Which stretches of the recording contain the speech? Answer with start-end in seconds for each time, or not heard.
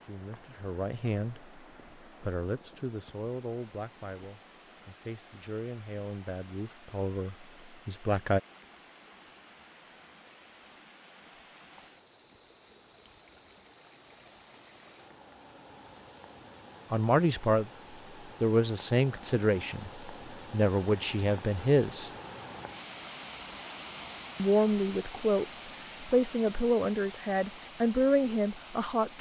0.0-1.6, 2.2-8.4, 16.9-22.1, 24.4-29.1.